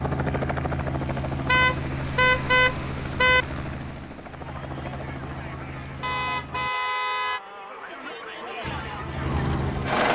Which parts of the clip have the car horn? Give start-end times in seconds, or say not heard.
1.4-3.5, 6.0-7.4.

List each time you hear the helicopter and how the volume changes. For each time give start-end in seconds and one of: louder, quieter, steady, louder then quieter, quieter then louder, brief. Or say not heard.
0.0-6.7 quieter
8.6-10.1 brief.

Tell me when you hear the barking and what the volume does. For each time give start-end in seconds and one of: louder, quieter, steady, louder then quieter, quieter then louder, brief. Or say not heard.
not heard.